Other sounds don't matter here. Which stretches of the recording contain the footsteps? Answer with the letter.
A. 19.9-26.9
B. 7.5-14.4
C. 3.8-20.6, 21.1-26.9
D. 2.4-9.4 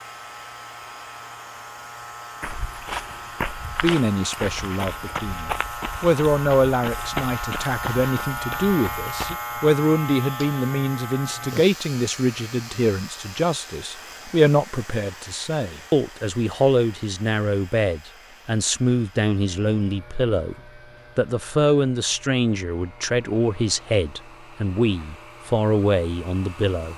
D.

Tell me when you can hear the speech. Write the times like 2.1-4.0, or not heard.
3.8-20.6, 21.1-26.9.